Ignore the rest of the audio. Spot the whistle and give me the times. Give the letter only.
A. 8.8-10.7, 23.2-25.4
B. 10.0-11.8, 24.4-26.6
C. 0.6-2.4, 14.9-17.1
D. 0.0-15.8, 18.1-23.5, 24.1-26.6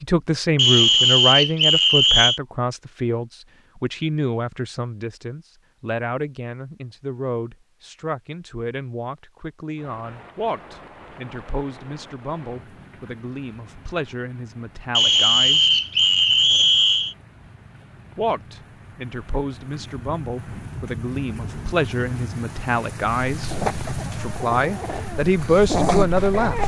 C.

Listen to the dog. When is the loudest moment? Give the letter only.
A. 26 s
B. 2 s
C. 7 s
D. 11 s
A.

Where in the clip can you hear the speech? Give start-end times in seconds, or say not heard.
0.0-15.8, 18.1-23.5, 24.1-26.6.